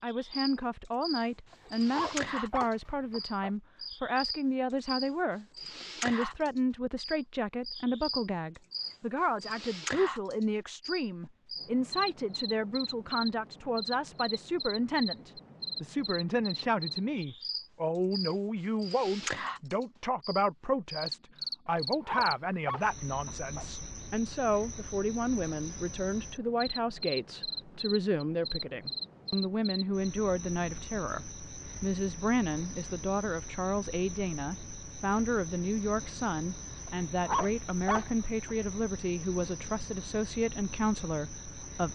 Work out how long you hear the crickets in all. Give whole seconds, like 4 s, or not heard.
42 s.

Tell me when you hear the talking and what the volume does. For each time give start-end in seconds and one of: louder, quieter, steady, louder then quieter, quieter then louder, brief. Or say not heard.
0.0-41.8 steady.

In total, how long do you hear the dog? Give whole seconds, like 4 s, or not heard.
6 s.